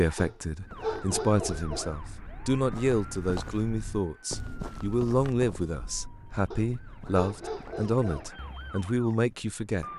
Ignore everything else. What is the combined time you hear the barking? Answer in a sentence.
The barking can be heard for 4 seconds in total.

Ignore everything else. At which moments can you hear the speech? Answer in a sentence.
The speech can be heard from 0.0 to 9.9 s.